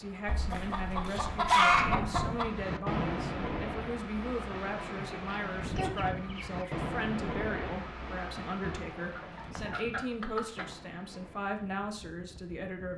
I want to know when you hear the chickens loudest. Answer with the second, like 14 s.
2 s.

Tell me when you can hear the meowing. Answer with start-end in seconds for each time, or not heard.
not heard.